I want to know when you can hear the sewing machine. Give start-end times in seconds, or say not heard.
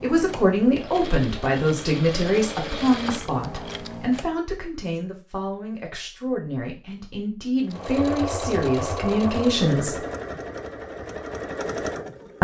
0.0-4.3, 7.6-12.3.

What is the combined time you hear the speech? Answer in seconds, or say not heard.
10 s.